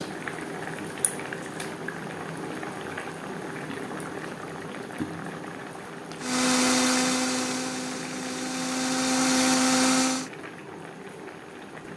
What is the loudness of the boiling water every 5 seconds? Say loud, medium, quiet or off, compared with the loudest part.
loud, loud, medium.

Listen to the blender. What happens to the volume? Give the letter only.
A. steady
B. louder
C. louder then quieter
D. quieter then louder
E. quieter
D.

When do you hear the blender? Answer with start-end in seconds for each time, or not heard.
6.2-10.3.